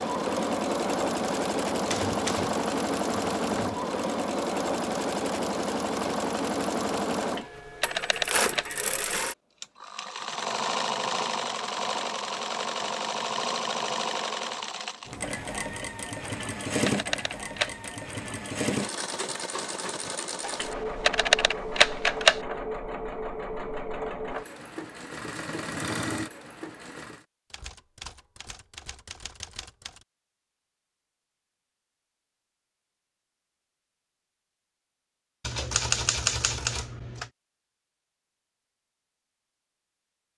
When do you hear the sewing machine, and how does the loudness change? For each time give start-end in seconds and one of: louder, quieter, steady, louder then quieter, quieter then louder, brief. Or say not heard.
0.0-27.2 quieter.